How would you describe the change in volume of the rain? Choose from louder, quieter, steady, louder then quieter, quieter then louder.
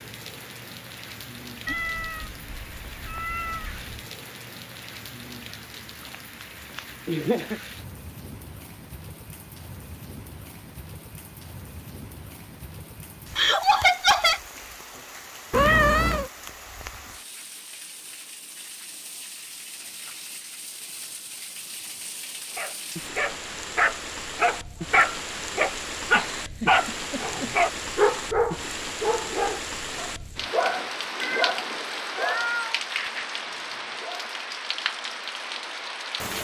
louder.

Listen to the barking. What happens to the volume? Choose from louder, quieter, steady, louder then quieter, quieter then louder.
quieter.